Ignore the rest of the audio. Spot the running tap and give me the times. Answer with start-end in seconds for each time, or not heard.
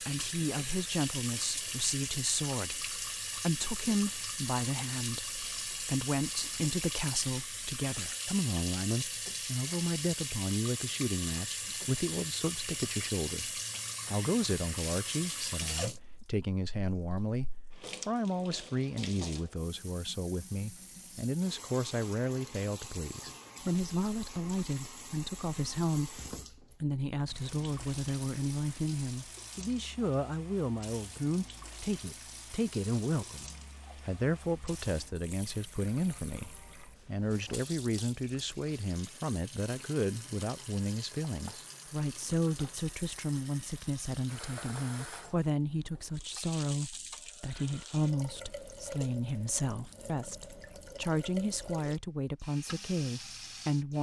0.0-53.9.